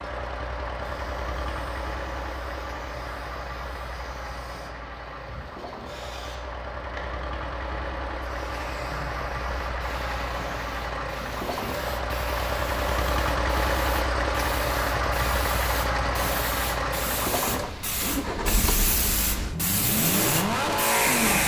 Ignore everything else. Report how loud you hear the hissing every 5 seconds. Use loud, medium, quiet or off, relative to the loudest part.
quiet, quiet, quiet, medium, loud.